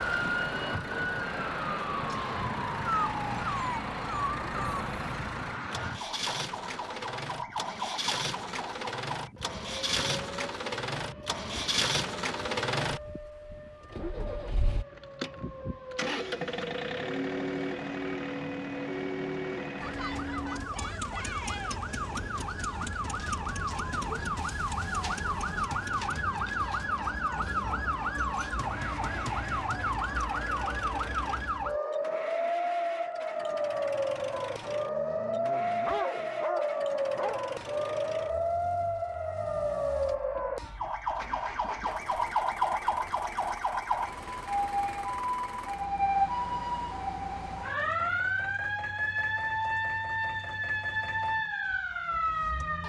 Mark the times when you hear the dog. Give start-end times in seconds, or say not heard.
2.9-4.8, 34.6-37.4.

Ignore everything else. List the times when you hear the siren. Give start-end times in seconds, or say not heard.
0.0-52.8.